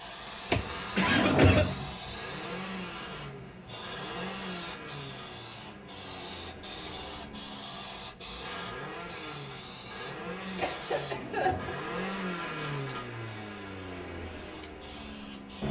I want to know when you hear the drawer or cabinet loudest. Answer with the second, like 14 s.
1 s.